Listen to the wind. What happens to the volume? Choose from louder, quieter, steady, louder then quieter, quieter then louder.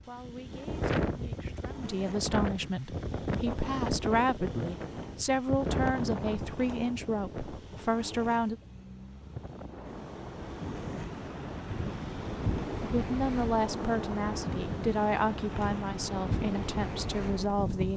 quieter then louder.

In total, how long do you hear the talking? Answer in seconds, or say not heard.
14 s.